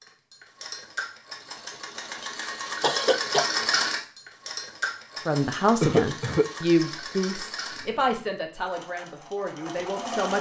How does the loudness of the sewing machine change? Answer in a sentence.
The loudness of the sewing machine goes up, then down.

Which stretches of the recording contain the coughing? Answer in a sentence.
The coughing can be heard from 2.8 to 3.5 s and from 5.8 to 6.5 s.